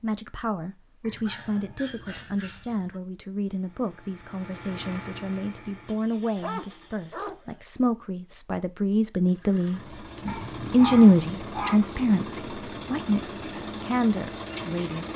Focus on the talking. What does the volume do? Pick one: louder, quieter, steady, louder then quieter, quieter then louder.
louder then quieter.